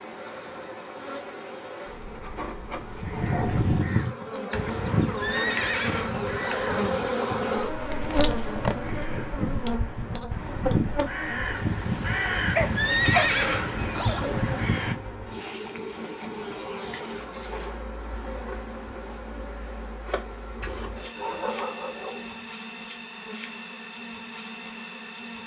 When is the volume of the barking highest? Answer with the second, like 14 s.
13 s.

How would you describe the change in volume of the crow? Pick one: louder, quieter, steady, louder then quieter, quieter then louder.
quieter then louder.